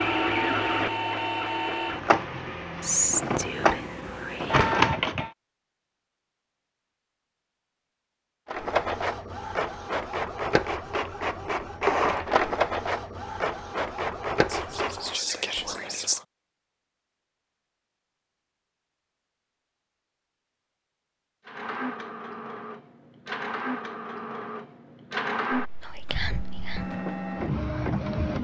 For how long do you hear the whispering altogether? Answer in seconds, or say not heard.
5 s.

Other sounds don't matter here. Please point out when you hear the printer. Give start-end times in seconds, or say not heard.
0.0-5.3, 8.4-15.2, 21.4-28.4.